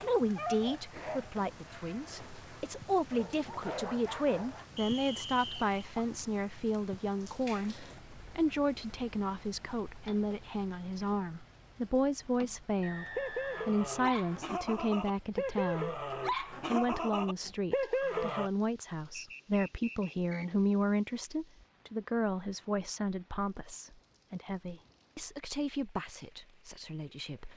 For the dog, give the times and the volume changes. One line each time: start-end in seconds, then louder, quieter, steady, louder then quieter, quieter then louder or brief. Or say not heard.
0.1-4.7 quieter then louder
13.2-18.5 louder.